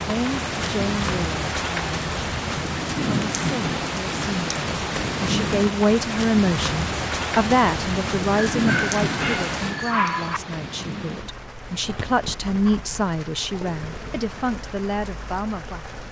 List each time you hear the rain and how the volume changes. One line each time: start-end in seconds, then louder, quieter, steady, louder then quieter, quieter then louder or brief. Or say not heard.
0.0-16.0 quieter.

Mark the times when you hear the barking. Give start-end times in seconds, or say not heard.
8.5-10.4.